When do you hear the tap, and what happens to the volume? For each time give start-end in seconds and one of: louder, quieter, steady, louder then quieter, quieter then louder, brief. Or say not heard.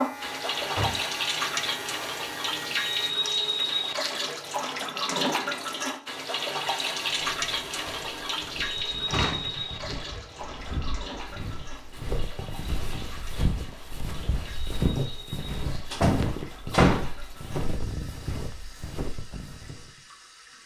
0.0-20.6 quieter.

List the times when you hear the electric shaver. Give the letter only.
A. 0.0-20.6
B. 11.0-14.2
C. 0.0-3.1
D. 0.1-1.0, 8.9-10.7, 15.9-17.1
C.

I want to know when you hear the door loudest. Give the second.
17 s.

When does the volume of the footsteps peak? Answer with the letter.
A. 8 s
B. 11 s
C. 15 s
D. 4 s
C.